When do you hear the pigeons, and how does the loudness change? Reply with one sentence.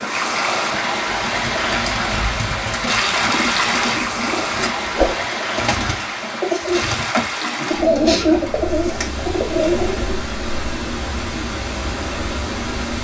You can hear the pigeons from 1.1 to 10.2 s, getting louder.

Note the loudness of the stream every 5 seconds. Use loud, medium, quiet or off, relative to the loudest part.
loud, medium, medium.